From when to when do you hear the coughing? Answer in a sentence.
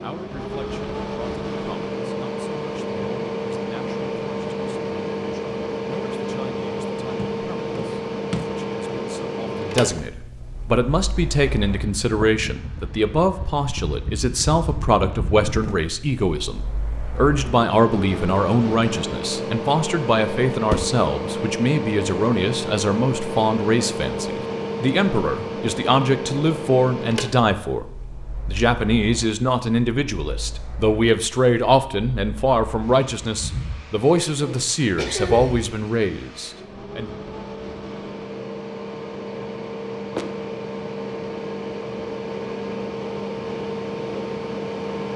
The coughing can be heard from 34.4 to 35.6 s.